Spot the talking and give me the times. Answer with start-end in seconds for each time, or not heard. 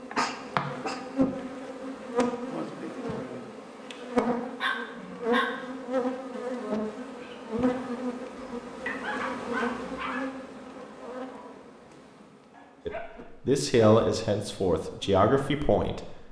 12.8-16.1.